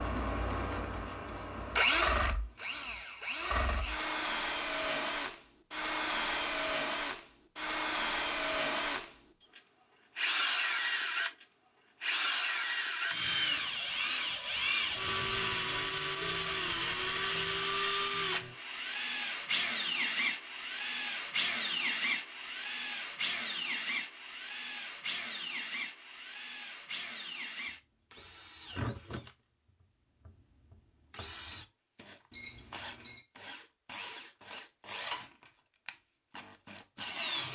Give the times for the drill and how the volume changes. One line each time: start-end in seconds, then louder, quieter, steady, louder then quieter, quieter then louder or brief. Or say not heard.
0.0-37.5 quieter.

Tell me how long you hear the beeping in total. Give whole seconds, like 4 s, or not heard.
4 s.